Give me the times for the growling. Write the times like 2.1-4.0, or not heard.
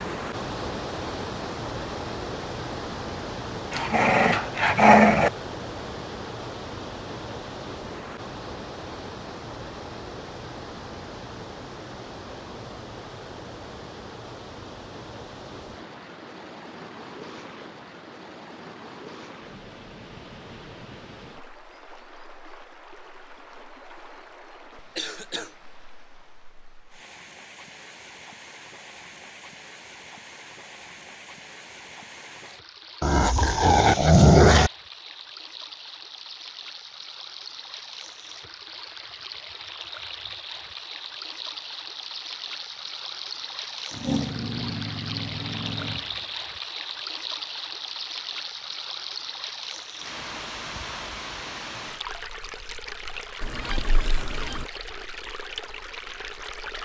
3.7-5.3, 33.0-34.7, 43.9-46.1.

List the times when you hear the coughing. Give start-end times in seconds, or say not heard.
24.9-25.5, 53.4-54.6.